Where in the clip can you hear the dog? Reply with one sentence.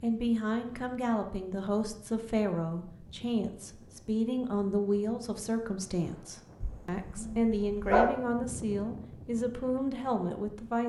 You can hear the dog from 6.6 to 8.1 s.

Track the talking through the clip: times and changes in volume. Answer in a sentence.
The talking can be heard from 0.0 to 10.8 s, at a steady volume.